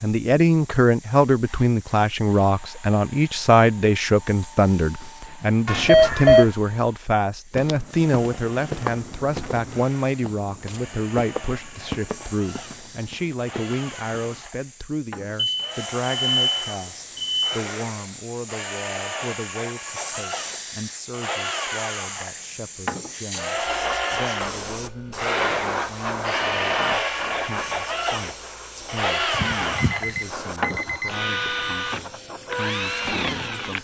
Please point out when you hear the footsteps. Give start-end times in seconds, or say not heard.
7.5-14.4.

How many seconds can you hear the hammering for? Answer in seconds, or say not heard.
not heard.